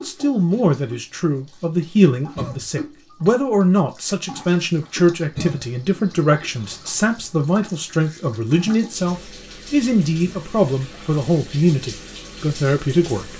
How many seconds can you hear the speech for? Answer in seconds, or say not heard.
13 s.